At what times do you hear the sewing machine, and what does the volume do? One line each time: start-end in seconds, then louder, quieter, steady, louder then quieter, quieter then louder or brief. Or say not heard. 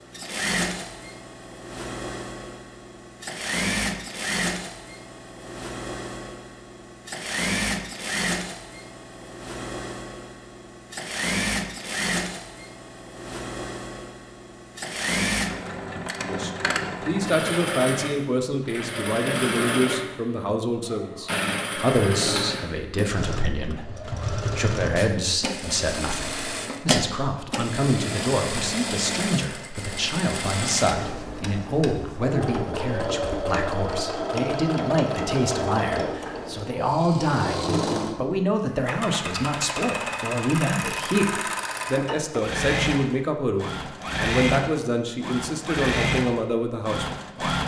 0.0-47.6 steady.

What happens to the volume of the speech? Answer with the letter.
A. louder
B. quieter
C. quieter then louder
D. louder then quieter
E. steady
E.